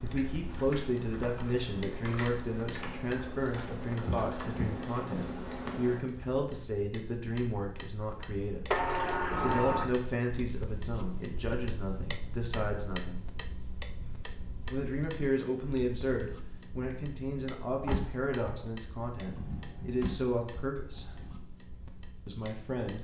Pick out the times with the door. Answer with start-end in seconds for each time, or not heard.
4.0-4.8, 8.7-9.8, 17.9-18.6.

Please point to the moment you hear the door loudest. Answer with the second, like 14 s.
9 s.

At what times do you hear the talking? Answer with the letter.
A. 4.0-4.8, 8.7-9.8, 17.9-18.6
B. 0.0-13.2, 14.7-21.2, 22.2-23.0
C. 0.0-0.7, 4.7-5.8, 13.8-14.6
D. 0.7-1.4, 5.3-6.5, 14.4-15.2
B.